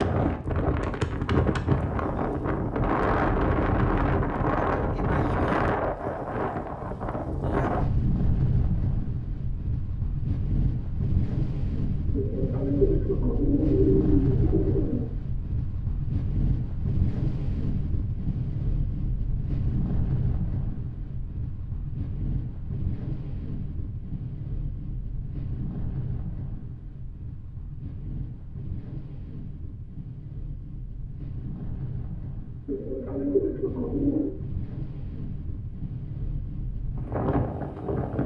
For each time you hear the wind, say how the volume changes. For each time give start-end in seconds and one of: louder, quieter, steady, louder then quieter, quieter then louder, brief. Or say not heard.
0.0-38.2 quieter.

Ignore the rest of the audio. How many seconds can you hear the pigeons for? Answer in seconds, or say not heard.
5 s.